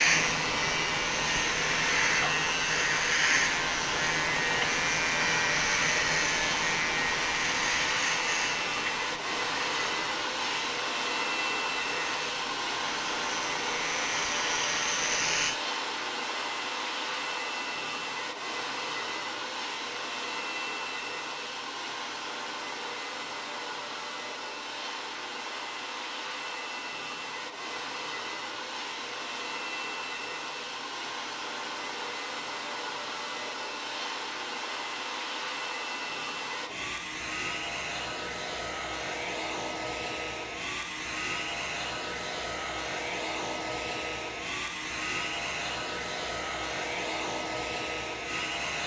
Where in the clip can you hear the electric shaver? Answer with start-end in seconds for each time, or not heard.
0.0-15.6.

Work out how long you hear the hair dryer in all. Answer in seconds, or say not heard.
49 s.